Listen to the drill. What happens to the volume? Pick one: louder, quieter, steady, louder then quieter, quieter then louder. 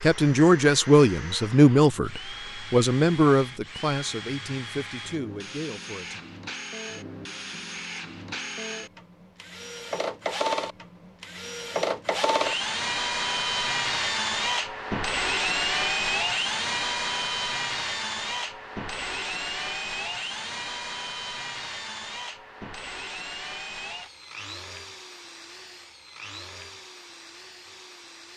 louder then quieter.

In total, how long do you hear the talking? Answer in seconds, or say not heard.
6 s.